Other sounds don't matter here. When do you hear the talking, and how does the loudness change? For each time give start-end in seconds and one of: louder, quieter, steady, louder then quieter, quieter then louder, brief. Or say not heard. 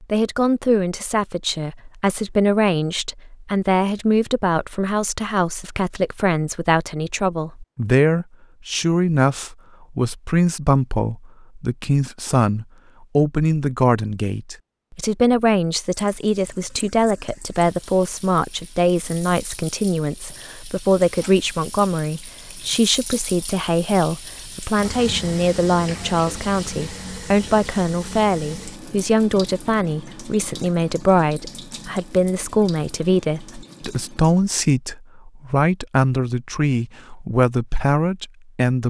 0.0-38.8 steady.